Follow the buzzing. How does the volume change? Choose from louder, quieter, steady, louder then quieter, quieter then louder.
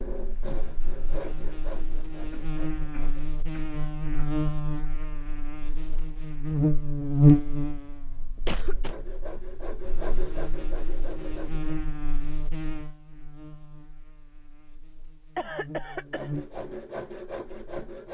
louder then quieter.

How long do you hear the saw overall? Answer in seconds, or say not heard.
8 s.